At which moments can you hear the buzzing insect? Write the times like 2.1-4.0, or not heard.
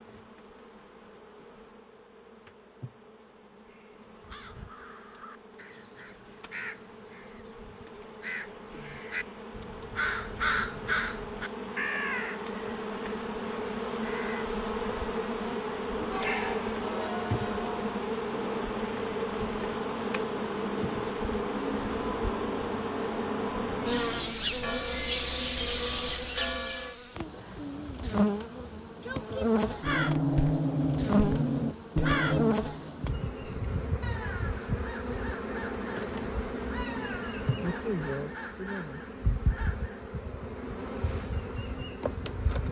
0.0-42.6.